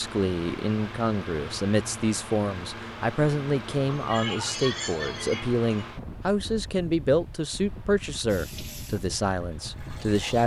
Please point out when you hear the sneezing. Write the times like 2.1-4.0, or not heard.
3.9-5.8.